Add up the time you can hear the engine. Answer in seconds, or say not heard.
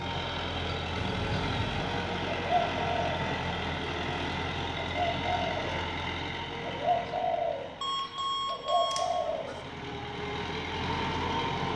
12 s.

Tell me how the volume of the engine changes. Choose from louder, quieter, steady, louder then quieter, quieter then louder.
quieter then louder.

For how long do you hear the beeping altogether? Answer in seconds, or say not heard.
3 s.